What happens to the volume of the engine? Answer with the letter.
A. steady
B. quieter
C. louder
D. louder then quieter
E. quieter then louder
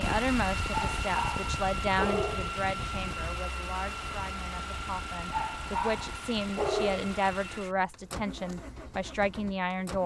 B.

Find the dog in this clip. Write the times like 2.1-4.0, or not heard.
0.7-2.6, 5.2-7.0.